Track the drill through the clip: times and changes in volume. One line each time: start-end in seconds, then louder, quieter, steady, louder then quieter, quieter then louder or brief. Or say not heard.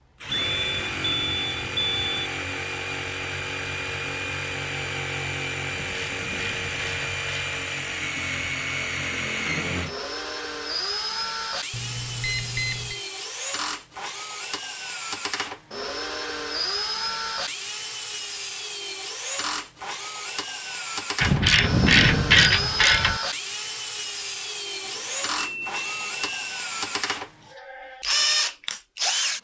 0.2-29.3 steady.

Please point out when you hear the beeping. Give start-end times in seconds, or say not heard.
0.3-2.3, 11.7-13.0, 24.9-27.1.